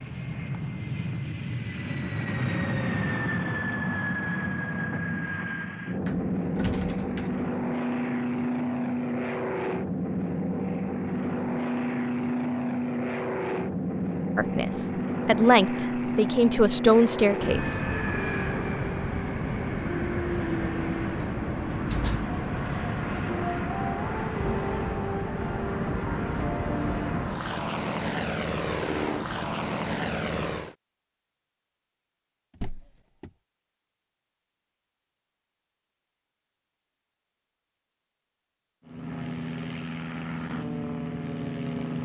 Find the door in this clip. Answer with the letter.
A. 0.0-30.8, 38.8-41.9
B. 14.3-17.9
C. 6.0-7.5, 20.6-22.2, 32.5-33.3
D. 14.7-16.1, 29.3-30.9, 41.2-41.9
C.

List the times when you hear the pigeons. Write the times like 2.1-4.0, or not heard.
not heard.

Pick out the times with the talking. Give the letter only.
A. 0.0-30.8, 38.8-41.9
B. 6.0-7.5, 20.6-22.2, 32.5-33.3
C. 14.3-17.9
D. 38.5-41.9
C.